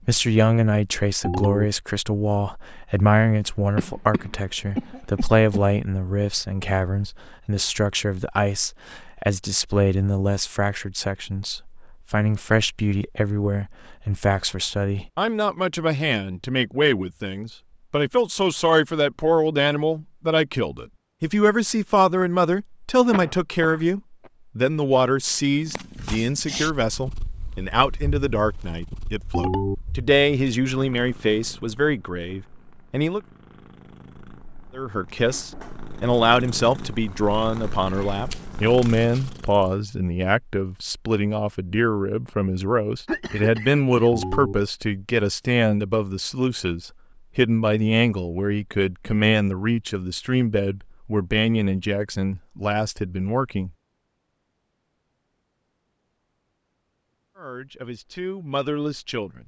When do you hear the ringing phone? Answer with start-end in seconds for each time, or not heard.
1.2-1.6, 29.3-29.8, 44.1-44.5.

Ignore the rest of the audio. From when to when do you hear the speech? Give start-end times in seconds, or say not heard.
0.1-33.2, 34.8-53.7, 57.4-59.4.